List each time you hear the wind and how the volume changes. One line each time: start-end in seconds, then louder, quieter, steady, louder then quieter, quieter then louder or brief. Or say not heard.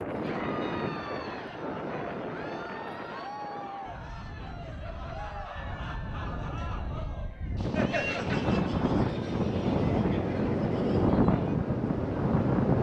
0.0-12.7 quieter then louder.